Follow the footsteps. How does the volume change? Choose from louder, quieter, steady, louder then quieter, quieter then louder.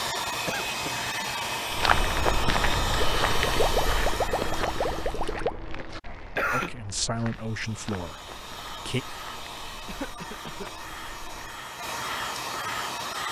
quieter.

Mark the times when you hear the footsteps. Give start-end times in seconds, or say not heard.
1.7-11.7.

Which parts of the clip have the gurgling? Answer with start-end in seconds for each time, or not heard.
3.2-5.6.